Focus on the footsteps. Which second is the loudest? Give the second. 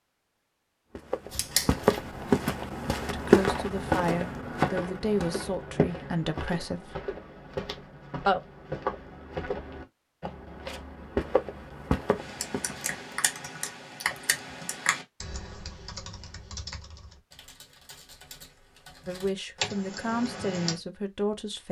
3 s.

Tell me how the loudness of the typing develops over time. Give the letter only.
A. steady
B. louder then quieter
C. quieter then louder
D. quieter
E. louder
C.